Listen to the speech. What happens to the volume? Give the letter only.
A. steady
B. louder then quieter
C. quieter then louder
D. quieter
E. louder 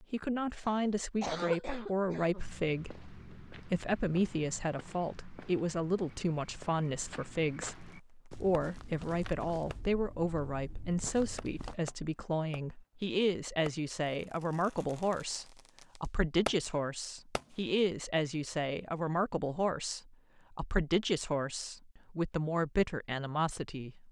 A.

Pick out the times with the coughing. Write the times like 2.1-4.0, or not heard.
0.6-2.5.